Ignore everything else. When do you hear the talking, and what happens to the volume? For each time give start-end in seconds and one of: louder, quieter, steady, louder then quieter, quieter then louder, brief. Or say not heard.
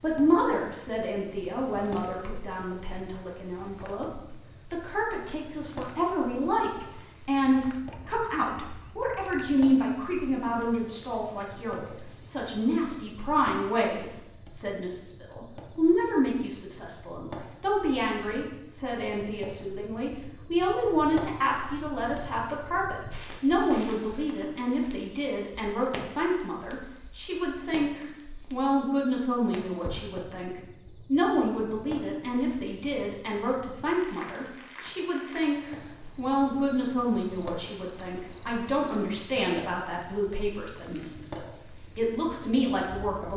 0.0-43.3 steady.